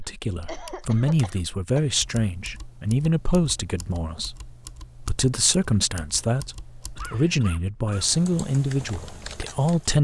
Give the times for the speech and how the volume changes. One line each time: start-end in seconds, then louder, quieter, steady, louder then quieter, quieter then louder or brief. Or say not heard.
0.0-9.9 steady.